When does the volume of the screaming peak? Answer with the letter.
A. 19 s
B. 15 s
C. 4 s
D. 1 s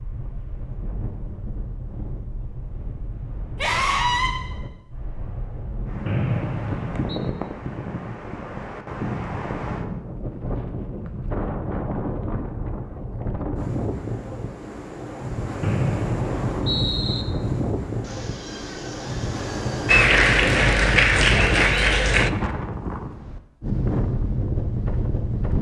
C.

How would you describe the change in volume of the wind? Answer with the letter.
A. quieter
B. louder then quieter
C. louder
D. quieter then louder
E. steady
C.